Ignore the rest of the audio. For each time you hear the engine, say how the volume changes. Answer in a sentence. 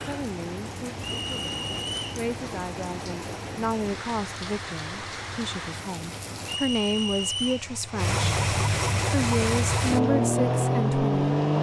The engine can be heard from 0.0 to 11.5 s, getting louder.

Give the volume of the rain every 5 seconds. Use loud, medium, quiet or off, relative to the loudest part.
loud, loud, off.